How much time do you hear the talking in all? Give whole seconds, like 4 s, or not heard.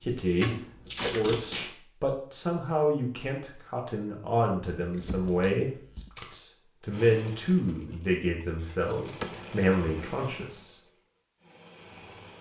11 s.